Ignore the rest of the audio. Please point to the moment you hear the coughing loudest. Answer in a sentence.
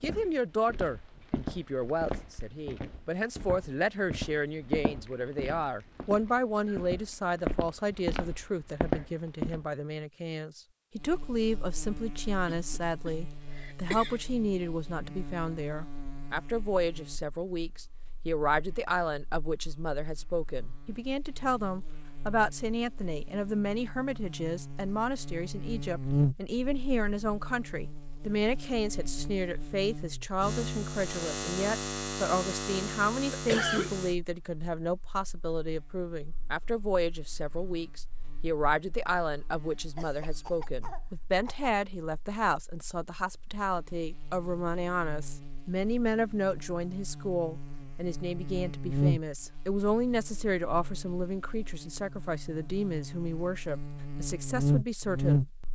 The loudest moment of the coughing is at 34 seconds.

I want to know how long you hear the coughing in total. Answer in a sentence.
You can hear the coughing for 4 seconds altogether.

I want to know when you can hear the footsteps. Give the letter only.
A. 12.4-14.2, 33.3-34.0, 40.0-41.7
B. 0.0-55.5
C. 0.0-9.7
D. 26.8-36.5
C.